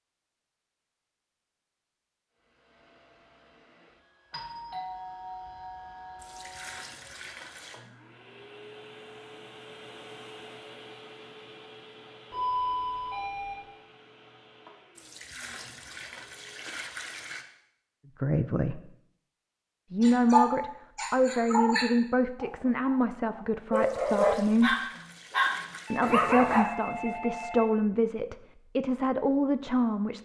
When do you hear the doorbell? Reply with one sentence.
The doorbell can be heard from 4.3 to 6.9 s, from 12.3 to 13.6 s and from 25.9 to 27.6 s.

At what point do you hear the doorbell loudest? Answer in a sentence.
The volume of the doorbell peaks at 13 seconds.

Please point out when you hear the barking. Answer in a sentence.
The barking can be heard from 20.0 to 26.7 s.